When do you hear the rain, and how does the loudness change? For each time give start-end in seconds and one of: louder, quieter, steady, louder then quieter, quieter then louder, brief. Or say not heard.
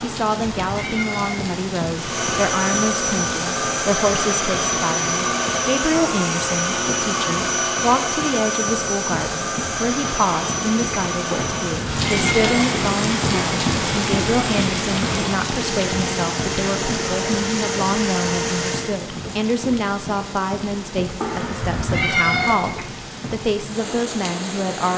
0.0-24.9 louder then quieter.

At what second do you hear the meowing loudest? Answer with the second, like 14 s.
22 s.